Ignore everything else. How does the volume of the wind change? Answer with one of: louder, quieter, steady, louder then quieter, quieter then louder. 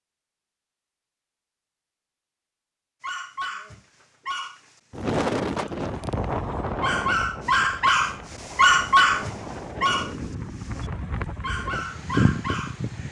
quieter then louder.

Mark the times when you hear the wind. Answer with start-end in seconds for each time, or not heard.
4.9-13.0.